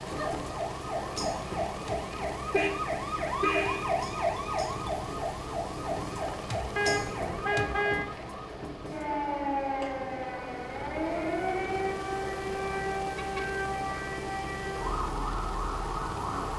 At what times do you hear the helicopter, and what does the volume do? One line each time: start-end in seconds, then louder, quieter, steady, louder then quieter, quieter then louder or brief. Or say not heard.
0.0-16.5 steady.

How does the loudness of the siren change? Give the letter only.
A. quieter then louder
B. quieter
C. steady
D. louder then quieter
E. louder
C.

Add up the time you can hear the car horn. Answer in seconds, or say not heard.
3 s.